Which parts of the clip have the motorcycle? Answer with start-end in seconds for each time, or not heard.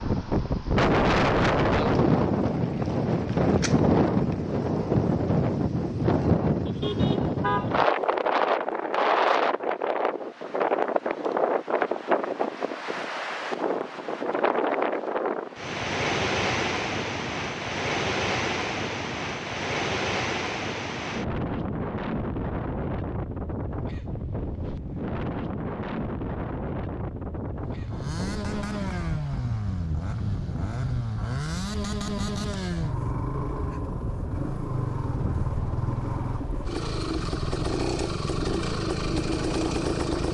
27.6-40.2.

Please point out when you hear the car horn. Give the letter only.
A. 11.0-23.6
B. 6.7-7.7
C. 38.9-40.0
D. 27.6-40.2
B.